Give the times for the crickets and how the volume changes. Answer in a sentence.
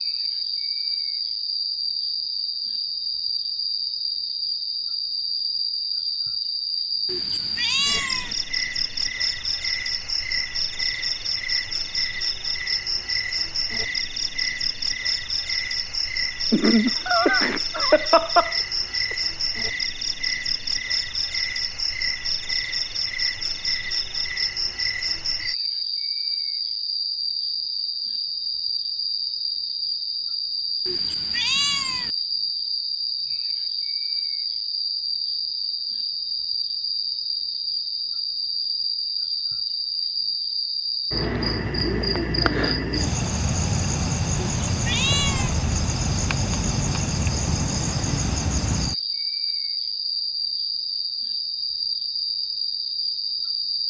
The crickets can be heard from 0.0 to 53.8 s, at a steady volume.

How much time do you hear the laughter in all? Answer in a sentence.
You can hear the laughter for 3 seconds altogether.